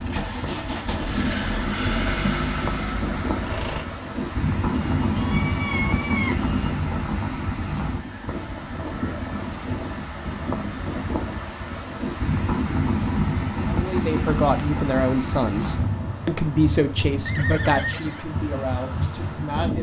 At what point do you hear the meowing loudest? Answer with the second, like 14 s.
6 s.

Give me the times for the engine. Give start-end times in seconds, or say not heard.
0.0-3.9.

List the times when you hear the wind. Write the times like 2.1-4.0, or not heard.
0.0-19.7.